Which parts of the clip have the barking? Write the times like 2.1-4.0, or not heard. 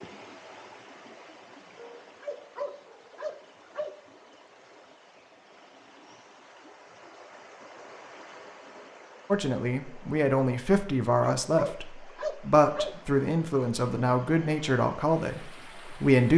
2.2-4.0, 11.2-12.9.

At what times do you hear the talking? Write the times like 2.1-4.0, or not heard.
9.3-16.3.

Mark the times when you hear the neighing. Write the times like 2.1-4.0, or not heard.
not heard.